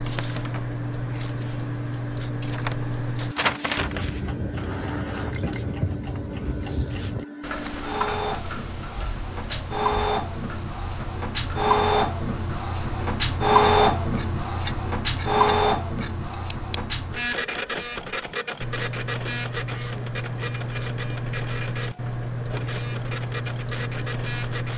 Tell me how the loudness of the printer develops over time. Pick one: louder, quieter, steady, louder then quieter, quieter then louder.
louder then quieter.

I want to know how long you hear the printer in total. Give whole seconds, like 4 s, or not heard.
25 s.